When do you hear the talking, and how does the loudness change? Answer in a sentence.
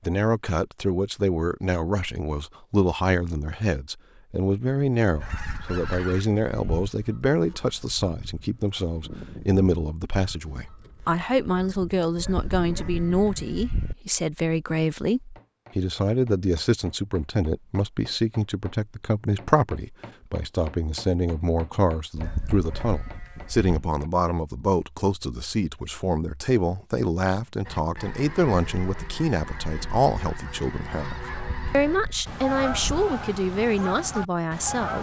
You can hear the talking from 0.1 to 34.9 s, at a steady volume.